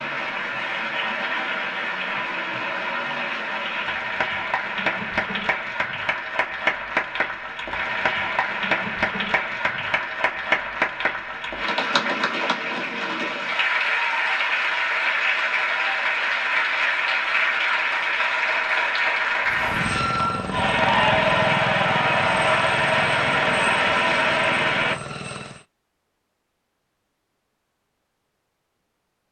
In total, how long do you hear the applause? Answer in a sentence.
You can hear the applause for 25 seconds altogether.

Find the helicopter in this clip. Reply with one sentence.
The helicopter can be heard from 19.4 to 25.6 s.